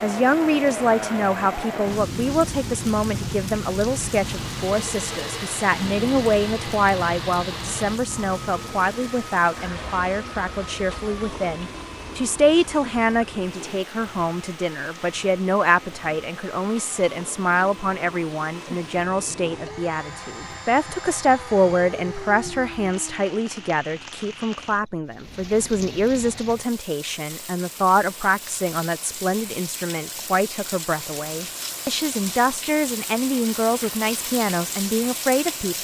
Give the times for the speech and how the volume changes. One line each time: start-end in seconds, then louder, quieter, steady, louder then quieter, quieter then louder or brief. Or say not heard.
0.0-35.7 steady.